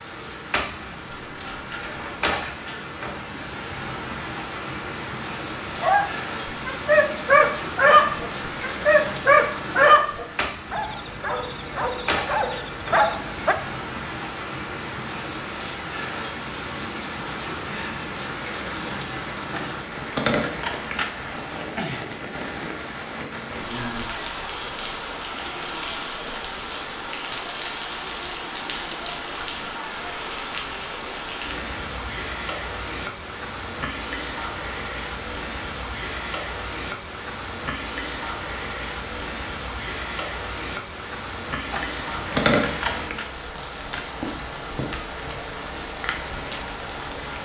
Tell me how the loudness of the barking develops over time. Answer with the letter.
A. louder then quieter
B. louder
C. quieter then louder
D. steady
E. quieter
C.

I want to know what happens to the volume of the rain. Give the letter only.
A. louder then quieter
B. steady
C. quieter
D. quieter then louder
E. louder
B.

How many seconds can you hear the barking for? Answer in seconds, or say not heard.
8 s.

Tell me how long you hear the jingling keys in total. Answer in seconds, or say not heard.
4 s.